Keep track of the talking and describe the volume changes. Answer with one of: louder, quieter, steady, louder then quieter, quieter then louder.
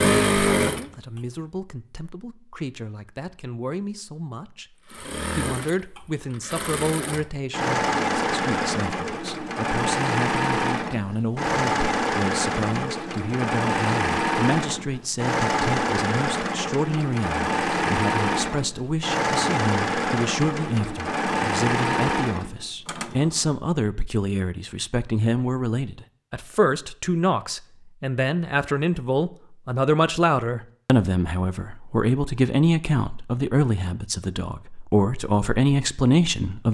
louder.